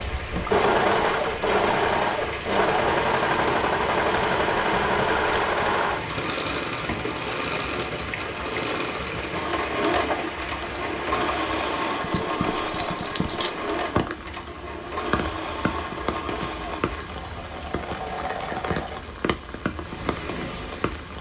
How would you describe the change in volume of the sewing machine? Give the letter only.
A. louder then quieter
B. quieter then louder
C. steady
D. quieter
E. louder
D.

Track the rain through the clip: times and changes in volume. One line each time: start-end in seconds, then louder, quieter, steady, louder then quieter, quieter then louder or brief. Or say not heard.
0.0-21.1 steady.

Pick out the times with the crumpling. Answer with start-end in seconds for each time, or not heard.
11.9-13.5.